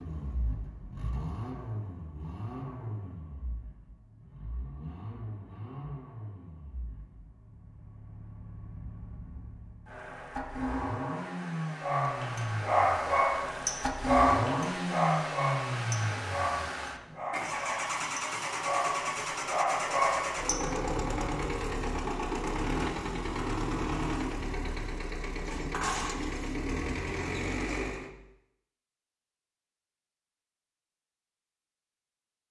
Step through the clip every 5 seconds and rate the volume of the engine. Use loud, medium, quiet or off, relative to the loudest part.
medium, quiet, loud, loud, loud, loud, off.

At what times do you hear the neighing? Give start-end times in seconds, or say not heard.
not heard.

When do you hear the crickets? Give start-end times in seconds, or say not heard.
not heard.